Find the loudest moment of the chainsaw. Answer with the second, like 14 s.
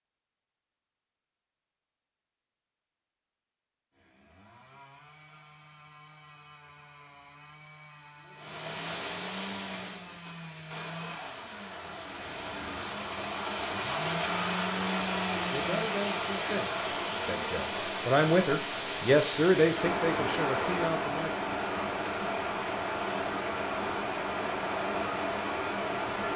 15 s.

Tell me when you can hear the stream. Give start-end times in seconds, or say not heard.
8.3-26.3.